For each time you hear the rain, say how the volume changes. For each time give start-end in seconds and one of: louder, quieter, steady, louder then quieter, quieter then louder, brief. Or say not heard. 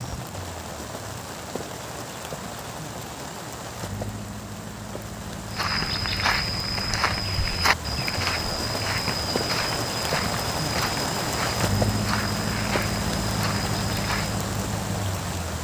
0.0-15.5 louder.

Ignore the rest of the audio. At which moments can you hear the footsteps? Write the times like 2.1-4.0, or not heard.
5.5-14.4.